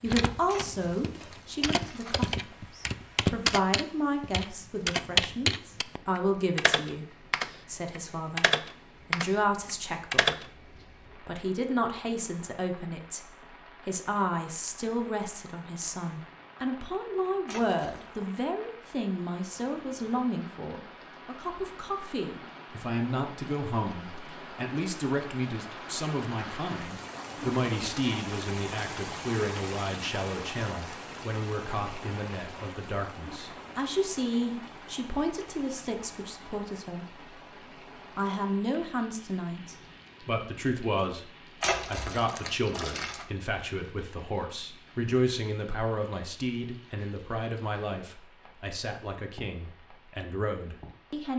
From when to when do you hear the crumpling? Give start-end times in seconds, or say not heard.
0.5-2.4, 17.4-18.1, 41.6-43.2.